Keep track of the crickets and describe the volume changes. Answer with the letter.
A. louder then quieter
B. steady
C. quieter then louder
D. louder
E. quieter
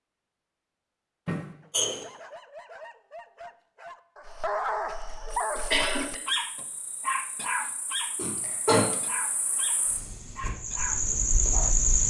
D.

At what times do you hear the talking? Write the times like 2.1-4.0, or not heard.
not heard.